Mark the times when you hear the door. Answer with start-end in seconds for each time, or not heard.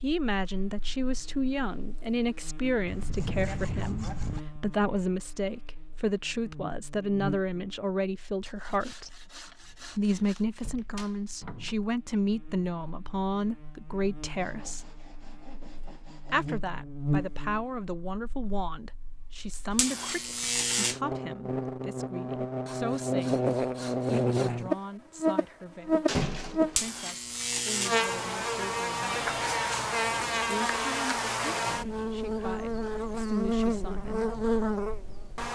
9.7-11.8, 26.1-26.9.